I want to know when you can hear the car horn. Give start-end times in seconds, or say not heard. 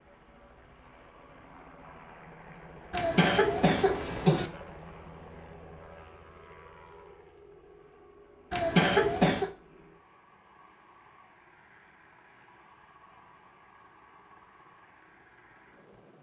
not heard.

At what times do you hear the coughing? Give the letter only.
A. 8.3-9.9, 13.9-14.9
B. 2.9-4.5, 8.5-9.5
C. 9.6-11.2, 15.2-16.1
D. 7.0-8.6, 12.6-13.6
B.